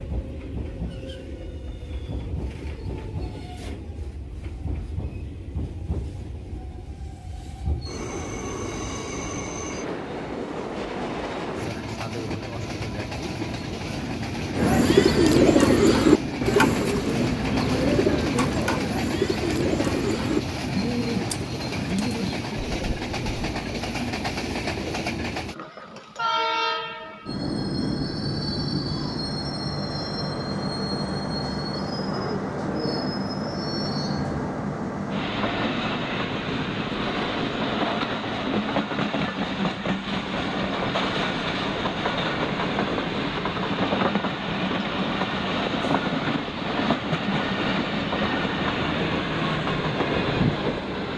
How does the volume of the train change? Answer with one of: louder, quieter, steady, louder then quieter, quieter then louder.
louder.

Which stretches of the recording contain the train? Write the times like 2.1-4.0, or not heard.
0.0-51.1.